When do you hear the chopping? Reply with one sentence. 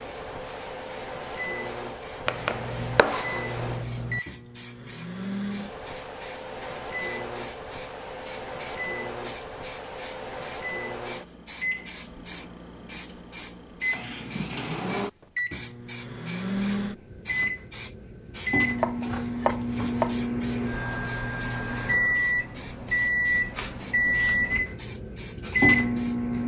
The chopping can be heard from 2.2 to 4.2 s and from 18.8 to 20.2 s.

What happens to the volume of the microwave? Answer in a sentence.
The volume of the microwave goes up.